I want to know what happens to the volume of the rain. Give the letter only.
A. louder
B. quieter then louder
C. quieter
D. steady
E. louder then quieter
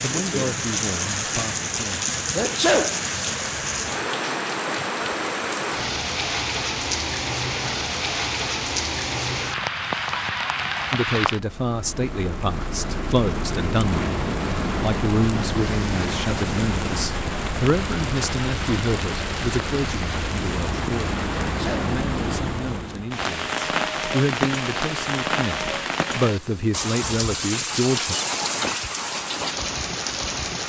D.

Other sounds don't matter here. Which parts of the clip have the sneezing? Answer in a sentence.
You can hear the sneezing from 2.4 to 3.0 s and from 21.4 to 21.9 s.